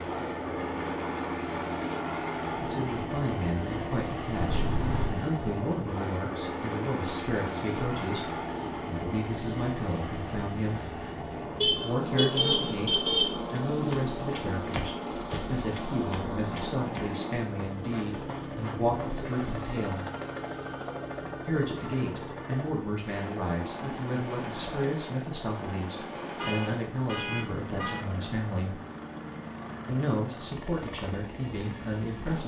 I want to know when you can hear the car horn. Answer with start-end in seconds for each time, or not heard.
4.3-5.1, 11.6-13.3, 26.2-28.0.